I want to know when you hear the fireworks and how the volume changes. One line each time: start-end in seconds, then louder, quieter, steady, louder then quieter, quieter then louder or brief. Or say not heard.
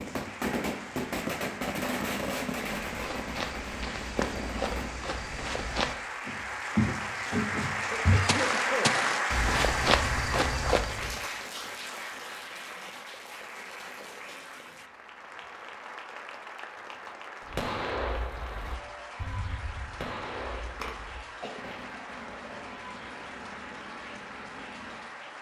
0.0-4.9 quieter
17.4-25.1 quieter.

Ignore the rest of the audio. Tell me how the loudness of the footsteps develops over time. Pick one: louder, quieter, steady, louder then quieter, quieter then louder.
louder.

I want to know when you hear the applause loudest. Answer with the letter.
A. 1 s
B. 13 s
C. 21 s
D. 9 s
D.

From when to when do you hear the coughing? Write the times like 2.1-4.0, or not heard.
7.9-8.9, 20.8-21.6.